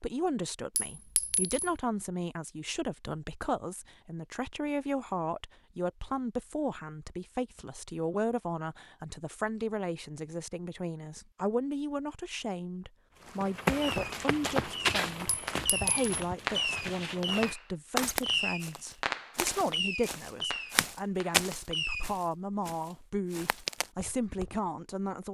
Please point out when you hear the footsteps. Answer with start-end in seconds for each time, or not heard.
13.2-24.6.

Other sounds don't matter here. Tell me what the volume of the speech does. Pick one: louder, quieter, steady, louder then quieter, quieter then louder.
steady.